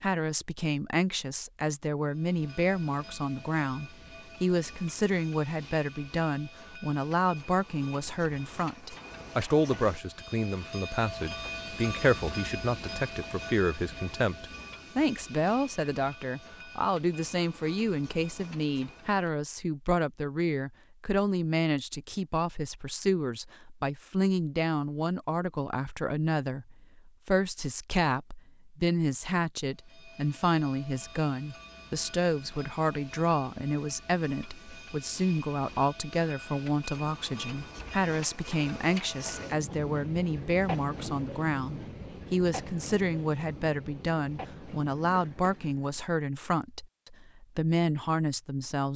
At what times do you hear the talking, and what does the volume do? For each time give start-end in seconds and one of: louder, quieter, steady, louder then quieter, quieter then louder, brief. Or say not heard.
0.0-48.9 steady.